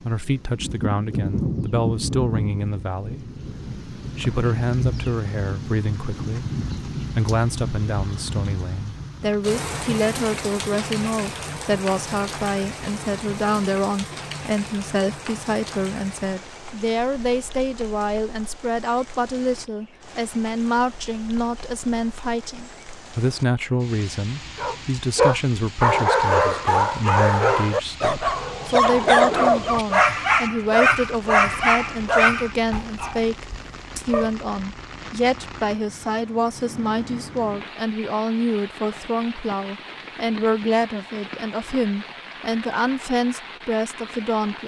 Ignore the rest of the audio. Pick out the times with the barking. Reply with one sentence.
The barking can be heard from 24.6 to 34.3 s.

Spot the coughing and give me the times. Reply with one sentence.
You can't hear the coughing here.